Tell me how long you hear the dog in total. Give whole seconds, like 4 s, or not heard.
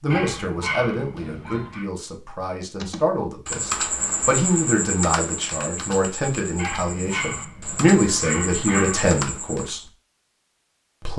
4 s.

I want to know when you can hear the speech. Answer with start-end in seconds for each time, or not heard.
0.0-9.8.